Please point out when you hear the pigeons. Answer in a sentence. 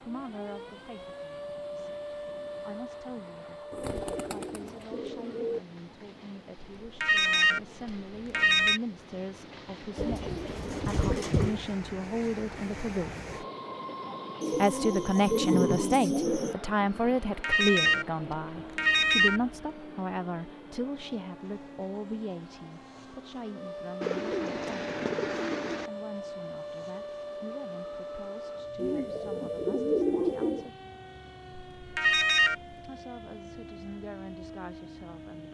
The pigeons can be heard from 3.7 to 5.6 s, from 9.9 to 11.6 s, from 14.4 to 16.6 s, from 24.0 to 25.9 s and from 28.8 to 30.7 s.